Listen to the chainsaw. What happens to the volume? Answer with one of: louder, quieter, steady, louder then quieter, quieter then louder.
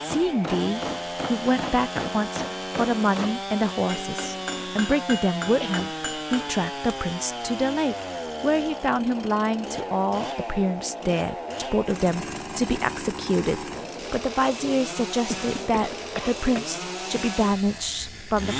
steady.